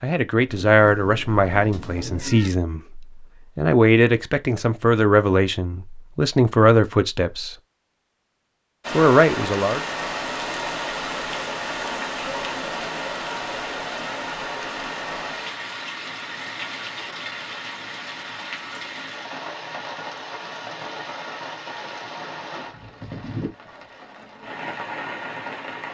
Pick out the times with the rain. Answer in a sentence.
You can hear the rain from 8.8 to 25.8 s.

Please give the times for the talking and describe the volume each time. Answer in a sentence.
You can hear the talking from 0.0 to 7.5 s, getting quieter then louder; and briefly from 8.9 to 9.8 s.